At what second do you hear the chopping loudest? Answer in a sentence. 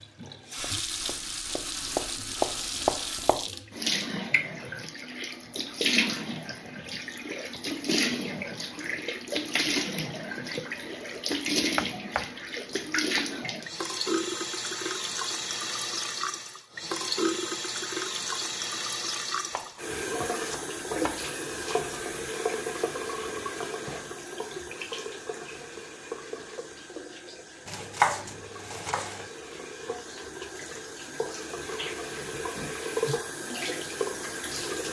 The volume of the chopping peaks at 28 seconds.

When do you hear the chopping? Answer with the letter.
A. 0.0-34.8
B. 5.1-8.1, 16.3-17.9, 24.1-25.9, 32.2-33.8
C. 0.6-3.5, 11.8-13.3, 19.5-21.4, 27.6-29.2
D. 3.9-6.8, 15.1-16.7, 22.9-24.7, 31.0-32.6
C.